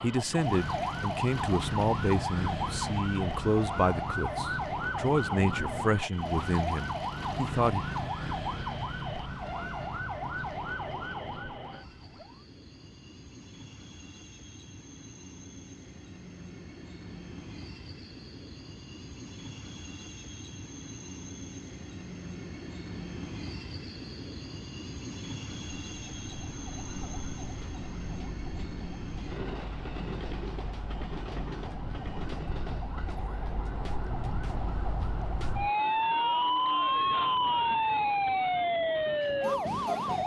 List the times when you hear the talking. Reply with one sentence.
The talking can be heard from 0.0 to 7.8 s.